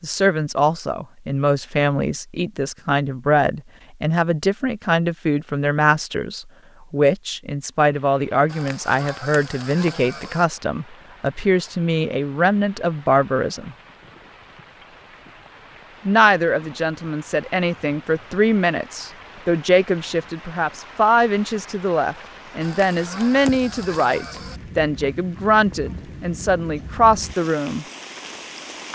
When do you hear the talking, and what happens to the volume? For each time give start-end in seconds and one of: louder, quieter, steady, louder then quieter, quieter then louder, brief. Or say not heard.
0.0-13.8 steady
16.1-27.9 steady.